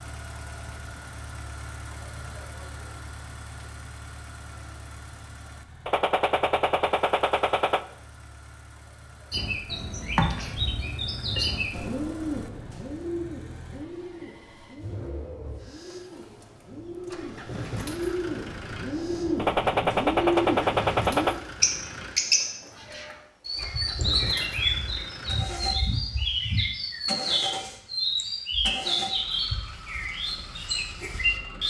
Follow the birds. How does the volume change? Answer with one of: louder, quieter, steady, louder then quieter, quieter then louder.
quieter then louder.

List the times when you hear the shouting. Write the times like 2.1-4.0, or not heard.
not heard.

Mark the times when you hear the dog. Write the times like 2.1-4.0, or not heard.
not heard.